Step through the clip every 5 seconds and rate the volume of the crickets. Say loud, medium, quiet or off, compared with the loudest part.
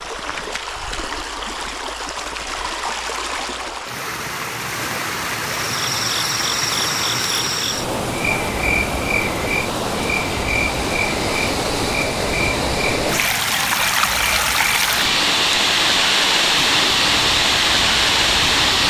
off, loud, loud, medium.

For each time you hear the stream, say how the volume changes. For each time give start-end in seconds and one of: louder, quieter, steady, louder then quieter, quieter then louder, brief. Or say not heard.
0.0-18.8 louder.